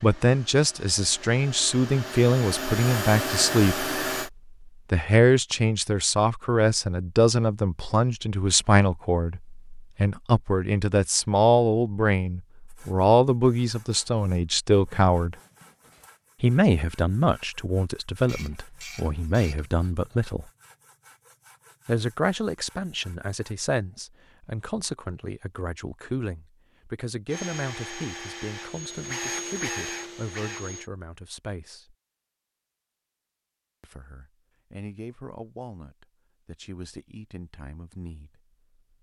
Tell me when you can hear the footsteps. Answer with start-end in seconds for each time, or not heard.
not heard.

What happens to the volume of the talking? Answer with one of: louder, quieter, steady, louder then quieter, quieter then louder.
quieter.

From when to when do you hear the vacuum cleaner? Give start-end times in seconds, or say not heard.
0.0-4.3, 27.2-30.9.